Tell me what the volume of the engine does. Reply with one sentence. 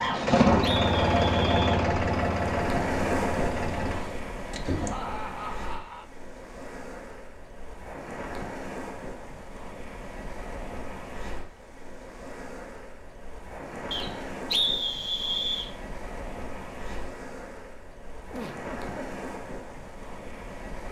The loudness of the engine goes down.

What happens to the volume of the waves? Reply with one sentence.
The loudness of the waves goes down.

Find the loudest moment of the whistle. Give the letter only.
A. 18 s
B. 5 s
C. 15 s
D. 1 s
C.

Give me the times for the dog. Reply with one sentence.
The dog can't be heard in this clip.